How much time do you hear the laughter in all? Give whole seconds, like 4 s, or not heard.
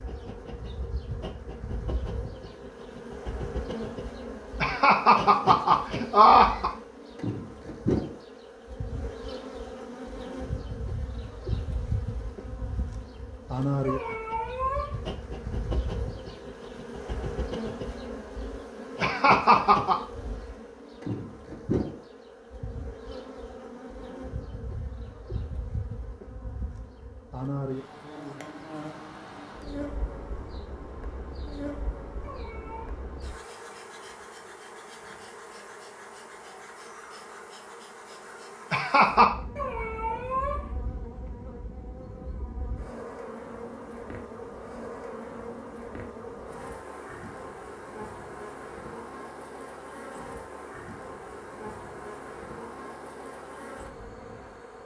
4 s.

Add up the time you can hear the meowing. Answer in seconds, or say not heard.
3 s.